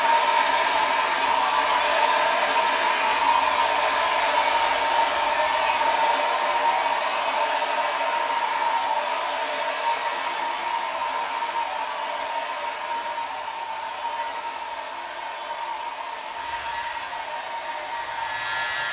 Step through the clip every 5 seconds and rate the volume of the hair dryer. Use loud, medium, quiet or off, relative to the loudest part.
loud, loud, medium, medium.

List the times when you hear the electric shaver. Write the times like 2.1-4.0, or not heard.
16.2-18.8.